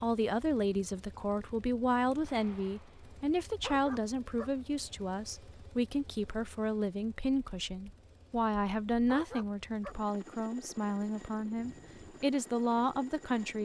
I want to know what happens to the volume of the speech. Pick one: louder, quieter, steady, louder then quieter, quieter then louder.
steady.